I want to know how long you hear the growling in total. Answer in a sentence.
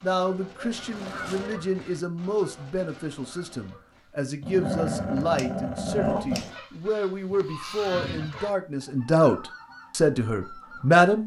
You can hear the growling for 2 seconds altogether.